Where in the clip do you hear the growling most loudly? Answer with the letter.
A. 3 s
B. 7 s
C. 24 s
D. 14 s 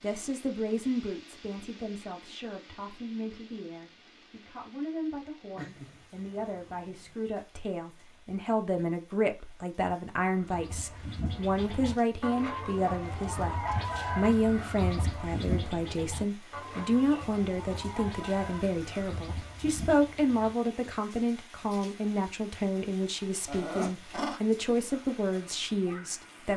C.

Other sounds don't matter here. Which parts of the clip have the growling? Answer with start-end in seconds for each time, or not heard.
5.5-7.2, 23.4-24.4.